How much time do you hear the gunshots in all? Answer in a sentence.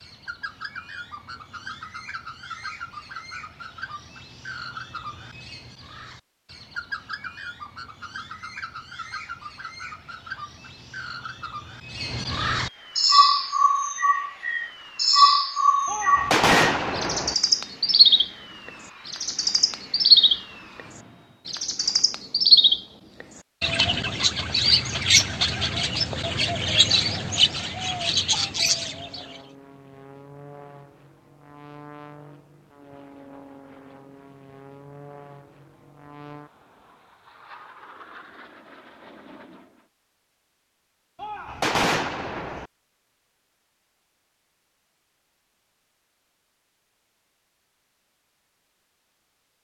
You can hear the gunshots for 3 seconds altogether.